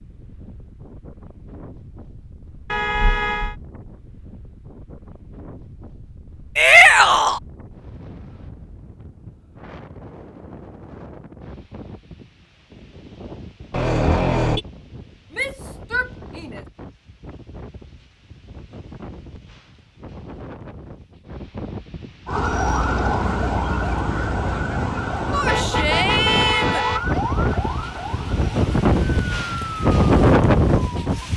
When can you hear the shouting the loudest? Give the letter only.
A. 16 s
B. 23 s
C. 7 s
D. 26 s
C.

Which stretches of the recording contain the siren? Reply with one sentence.
The siren can be heard from 22.2 to 31.3 s.